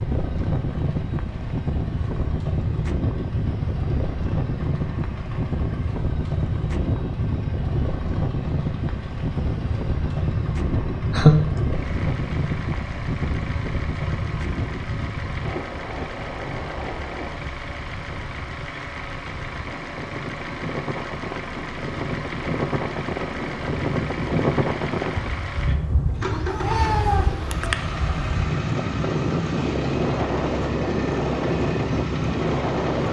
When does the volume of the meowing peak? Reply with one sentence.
The loudest moment of the meowing is at 11 seconds.